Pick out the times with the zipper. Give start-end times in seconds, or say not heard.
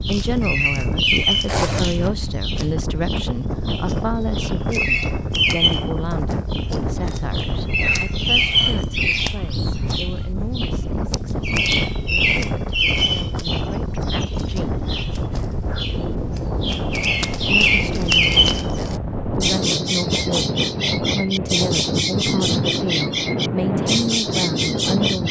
1.4-2.0.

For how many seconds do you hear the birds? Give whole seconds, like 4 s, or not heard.
25 s.